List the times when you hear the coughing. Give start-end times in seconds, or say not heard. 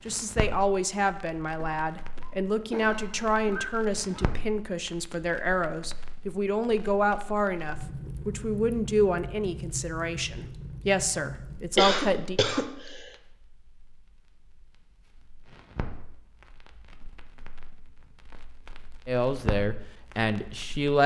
1.6-4.3, 11.8-13.1.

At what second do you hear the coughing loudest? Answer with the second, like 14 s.
12 s.